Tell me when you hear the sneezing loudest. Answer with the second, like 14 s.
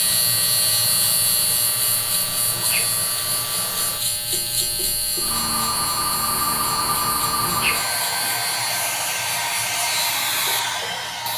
8 s.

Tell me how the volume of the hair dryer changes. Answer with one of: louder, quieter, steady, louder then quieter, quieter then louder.
louder.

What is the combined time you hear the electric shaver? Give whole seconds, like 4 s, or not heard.
11 s.